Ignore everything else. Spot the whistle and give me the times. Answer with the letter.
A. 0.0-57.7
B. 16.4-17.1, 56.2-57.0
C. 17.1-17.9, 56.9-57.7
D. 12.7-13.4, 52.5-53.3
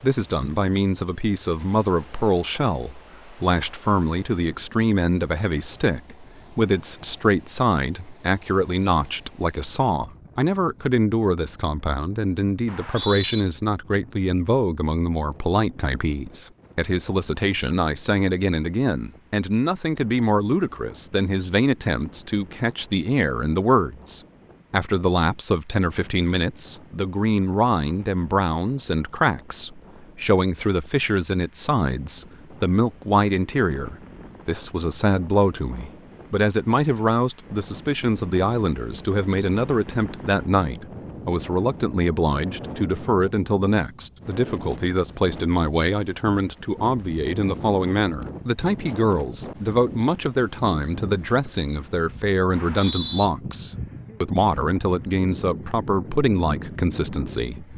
D.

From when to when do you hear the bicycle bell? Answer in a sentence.
The bicycle bell can't be heard in this clip.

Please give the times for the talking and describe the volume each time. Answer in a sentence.
The talking can be heard from 0.0 to 57.7 s, at a steady volume.